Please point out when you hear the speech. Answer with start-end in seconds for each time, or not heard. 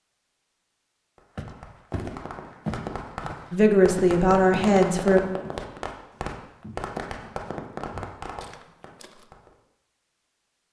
3.5-5.2.